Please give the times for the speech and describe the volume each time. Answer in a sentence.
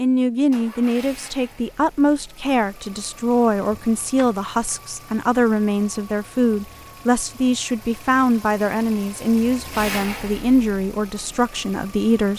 You can hear the speech from 0.0 to 12.3 s, at a steady volume.